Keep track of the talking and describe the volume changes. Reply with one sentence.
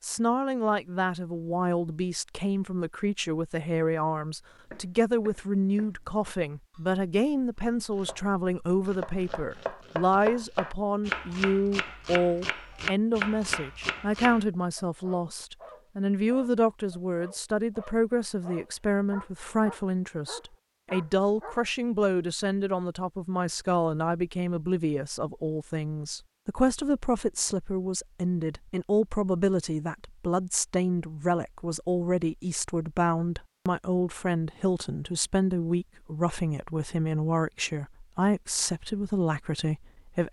The loudness of the talking stays about the same.